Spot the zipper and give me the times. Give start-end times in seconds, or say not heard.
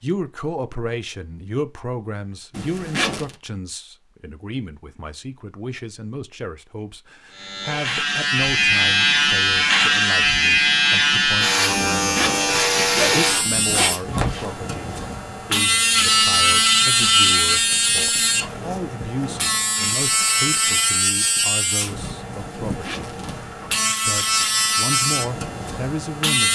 2.5-3.4, 11.9-13.9, 22.6-23.3.